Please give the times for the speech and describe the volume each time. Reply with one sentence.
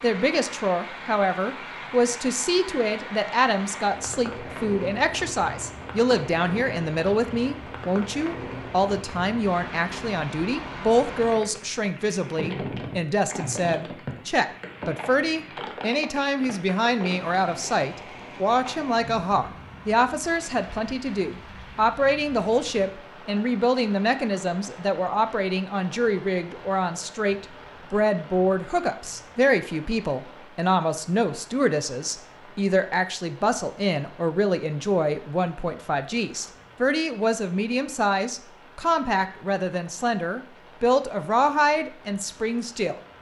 You can hear the speech from 0.0 to 43.0 s, at a steady volume.